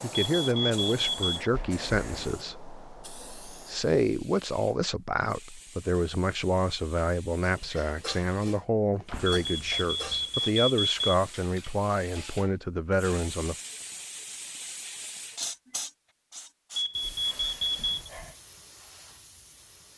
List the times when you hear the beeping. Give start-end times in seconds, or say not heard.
0.3-1.5, 9.4-11.2, 16.8-18.1.